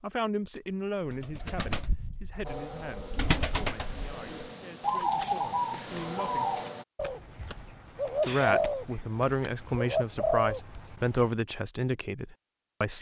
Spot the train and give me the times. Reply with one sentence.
You can hear the train from 2.4 to 6.8 s.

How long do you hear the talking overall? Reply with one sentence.
You can hear the talking for 11 seconds altogether.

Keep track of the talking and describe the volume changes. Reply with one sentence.
The loudness of the talking goes down, then up.